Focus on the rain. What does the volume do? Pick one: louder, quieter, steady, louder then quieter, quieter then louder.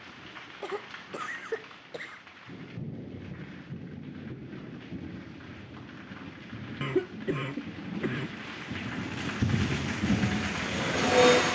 louder.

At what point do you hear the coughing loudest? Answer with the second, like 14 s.
7 s.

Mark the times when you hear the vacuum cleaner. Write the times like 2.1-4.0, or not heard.
10.2-11.5.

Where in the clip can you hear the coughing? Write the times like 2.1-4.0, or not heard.
0.6-2.2, 6.8-8.3.